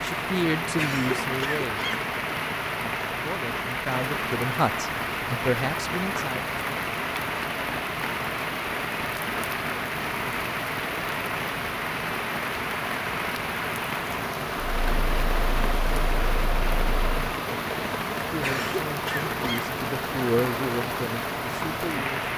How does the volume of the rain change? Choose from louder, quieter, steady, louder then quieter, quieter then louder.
steady.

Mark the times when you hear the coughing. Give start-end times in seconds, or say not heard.
0.8-2.1, 18.4-19.8.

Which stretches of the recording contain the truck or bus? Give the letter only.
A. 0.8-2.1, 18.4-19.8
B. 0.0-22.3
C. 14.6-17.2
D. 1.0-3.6
C.